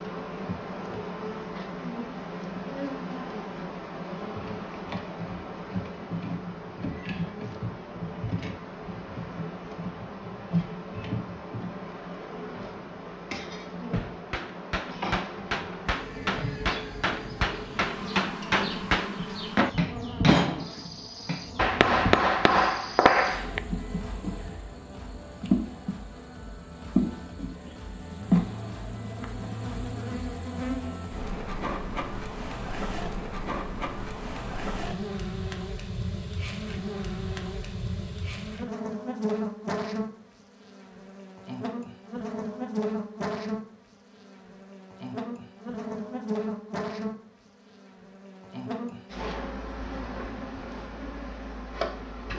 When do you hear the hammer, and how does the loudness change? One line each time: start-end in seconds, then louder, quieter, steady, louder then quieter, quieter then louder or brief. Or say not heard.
13.9-23.6 louder.